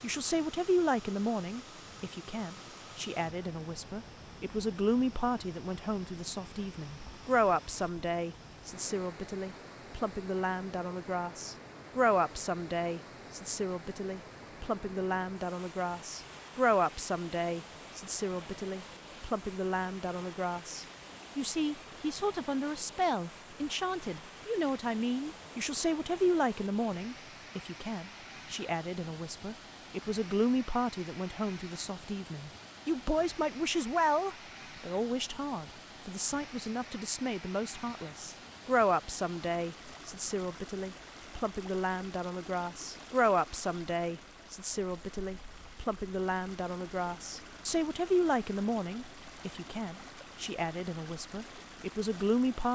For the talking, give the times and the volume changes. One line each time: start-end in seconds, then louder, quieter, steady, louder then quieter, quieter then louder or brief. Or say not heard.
0.0-52.6 steady.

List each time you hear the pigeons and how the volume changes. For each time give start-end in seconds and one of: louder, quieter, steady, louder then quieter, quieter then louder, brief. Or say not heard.
not heard.